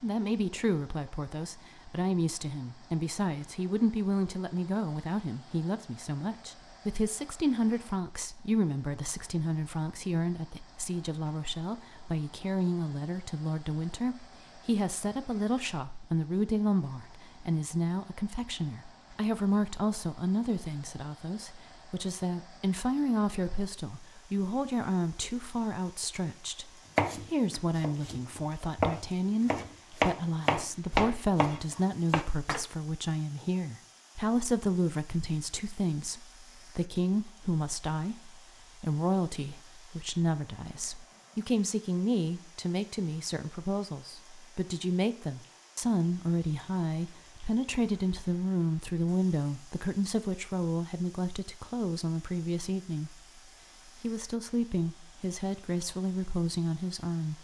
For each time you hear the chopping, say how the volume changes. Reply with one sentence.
You can hear the chopping from 26.9 to 32.6 s, getting louder then quieter.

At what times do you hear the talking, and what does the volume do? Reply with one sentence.
You can hear the talking from 0.0 to 57.3 s, at a steady volume.